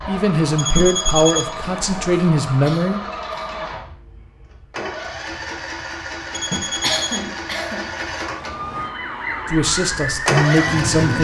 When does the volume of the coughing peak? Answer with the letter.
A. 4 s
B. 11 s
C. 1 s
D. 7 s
D.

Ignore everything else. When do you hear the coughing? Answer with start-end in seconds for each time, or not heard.
2.6-3.5, 6.8-7.9.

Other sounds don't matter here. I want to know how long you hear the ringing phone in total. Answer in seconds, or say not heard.
3 s.